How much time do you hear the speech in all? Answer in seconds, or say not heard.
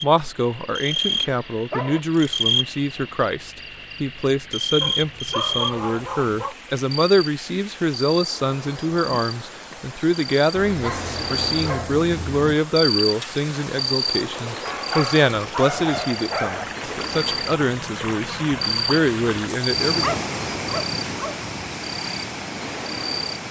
20 s.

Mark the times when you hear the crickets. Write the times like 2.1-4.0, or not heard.
0.0-23.4.